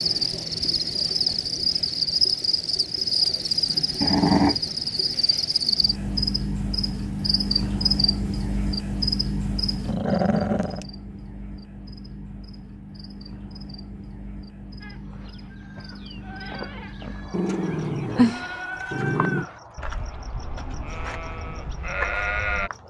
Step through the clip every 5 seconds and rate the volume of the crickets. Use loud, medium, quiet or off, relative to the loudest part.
loud, loud, quiet, quiet, quiet.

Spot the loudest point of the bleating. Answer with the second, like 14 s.
22 s.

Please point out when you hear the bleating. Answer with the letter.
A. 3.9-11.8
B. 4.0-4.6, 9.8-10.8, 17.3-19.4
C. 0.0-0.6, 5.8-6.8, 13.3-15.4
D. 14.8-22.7
D.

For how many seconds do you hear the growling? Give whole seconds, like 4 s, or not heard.
4 s.